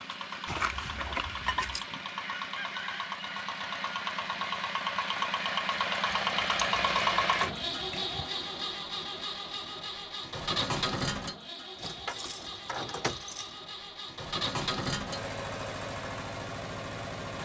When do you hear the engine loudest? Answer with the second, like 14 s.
7 s.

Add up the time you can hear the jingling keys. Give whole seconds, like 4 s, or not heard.
5 s.